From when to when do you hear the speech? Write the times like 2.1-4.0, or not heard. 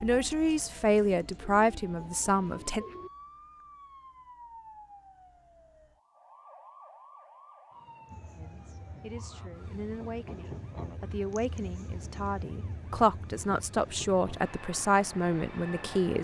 0.0-2.9, 8.3-16.1.